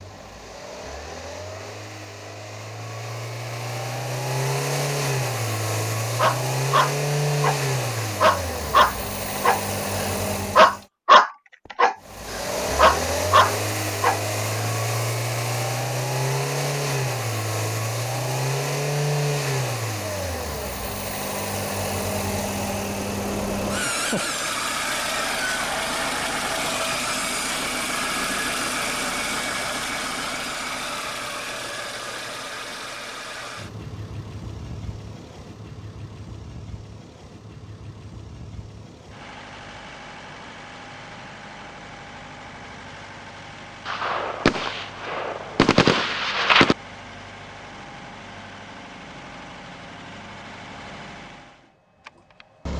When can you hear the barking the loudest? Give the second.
11 s.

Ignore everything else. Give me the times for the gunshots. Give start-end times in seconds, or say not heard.
43.9-46.8.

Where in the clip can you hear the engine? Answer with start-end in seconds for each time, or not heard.
0.0-10.8, 12.0-52.7.